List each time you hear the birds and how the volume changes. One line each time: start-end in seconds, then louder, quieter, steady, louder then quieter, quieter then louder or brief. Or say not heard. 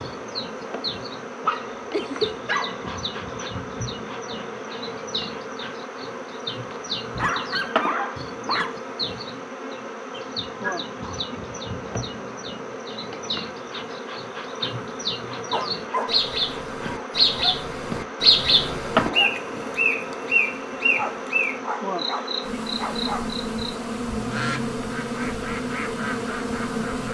0.0-27.0 louder then quieter.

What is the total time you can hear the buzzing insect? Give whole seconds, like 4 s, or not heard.
27 s.